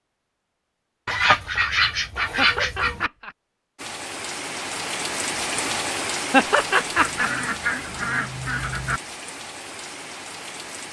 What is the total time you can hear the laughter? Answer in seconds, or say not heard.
2 s.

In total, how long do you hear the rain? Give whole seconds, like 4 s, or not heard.
7 s.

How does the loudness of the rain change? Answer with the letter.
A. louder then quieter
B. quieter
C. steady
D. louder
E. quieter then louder
B.